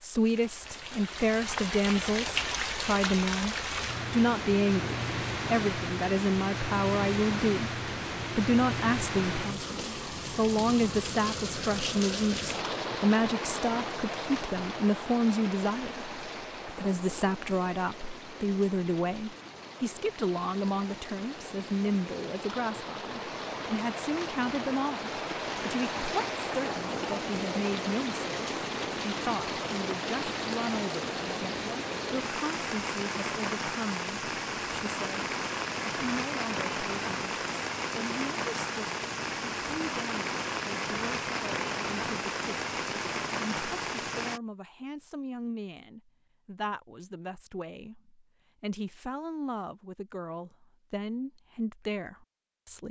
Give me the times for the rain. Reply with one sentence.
The rain can be heard from 0.0 to 44.4 s.